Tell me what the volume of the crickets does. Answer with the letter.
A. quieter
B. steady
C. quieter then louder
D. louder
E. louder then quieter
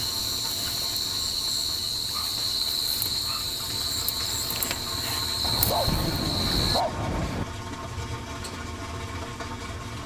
B.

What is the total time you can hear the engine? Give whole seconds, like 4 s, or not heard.
10 s.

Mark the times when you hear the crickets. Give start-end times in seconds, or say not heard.
0.0-6.8.